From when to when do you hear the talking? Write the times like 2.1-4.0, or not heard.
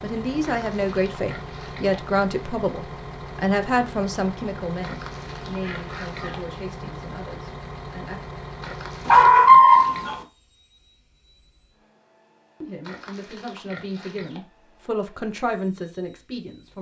0.0-8.2, 12.6-16.7.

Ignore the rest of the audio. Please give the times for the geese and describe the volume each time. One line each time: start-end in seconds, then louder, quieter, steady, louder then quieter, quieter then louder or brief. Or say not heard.
not heard.